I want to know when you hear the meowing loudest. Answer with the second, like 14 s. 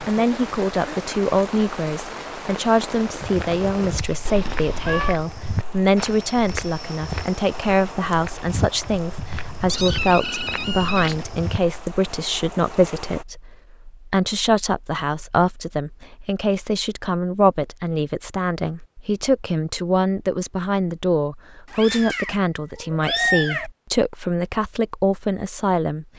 23 s.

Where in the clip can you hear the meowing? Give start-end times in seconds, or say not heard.
4.2-5.2, 9.7-11.2, 21.7-23.7.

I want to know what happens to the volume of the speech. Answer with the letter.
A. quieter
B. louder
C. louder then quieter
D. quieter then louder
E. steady
E.